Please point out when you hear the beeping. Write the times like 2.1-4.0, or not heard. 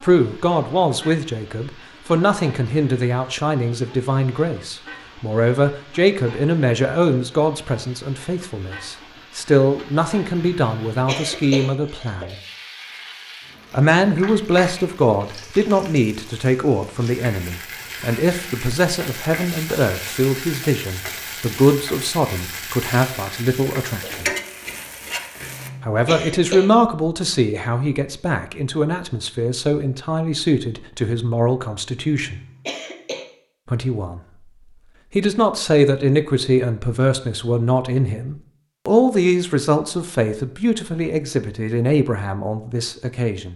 not heard.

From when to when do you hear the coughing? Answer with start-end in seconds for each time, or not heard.
10.4-12.2, 25.4-26.7, 32.1-33.2.